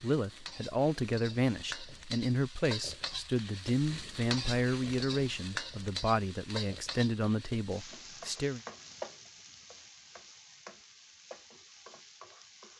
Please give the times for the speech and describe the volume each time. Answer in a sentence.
You can hear the speech from 0.0 to 8.6 s, at a steady volume.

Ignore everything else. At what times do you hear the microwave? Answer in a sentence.
The microwave can't be heard in this clip.